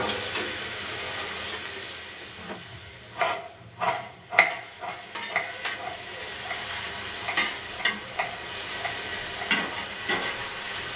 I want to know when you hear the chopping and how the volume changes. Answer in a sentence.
You can hear the chopping from 2.5 to 9.6 s, getting quieter.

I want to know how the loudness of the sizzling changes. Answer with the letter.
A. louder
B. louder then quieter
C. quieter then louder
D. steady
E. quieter
C.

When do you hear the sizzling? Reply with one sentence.
The sizzling can be heard from 0.0 to 10.9 s.